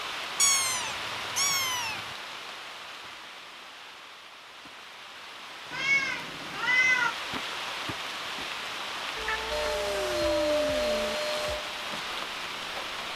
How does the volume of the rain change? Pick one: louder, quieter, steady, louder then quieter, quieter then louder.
quieter then louder.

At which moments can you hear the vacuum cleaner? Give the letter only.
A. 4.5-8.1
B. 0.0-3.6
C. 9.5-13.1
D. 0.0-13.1
C.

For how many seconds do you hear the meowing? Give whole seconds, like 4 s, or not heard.
5 s.